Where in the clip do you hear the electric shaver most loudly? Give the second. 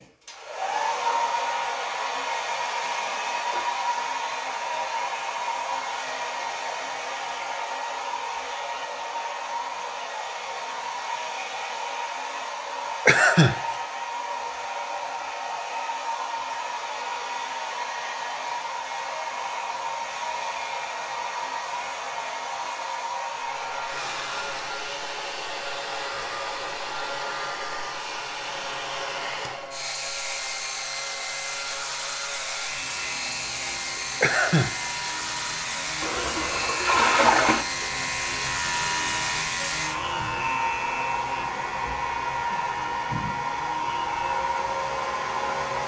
39 s.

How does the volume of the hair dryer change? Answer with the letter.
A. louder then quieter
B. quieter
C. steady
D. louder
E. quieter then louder
C.